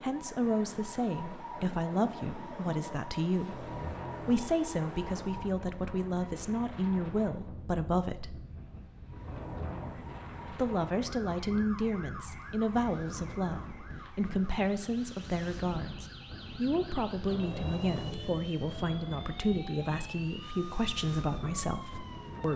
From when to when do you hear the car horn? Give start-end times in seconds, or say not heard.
3.5-5.5, 9.2-9.9, 17.2-18.4.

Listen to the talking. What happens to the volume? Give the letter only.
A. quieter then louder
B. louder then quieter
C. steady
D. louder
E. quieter
C.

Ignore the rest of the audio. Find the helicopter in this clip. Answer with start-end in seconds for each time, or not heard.
not heard.